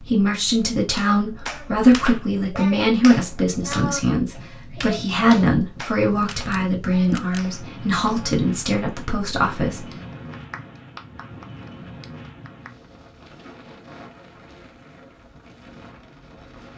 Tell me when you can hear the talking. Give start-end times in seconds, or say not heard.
0.0-9.8.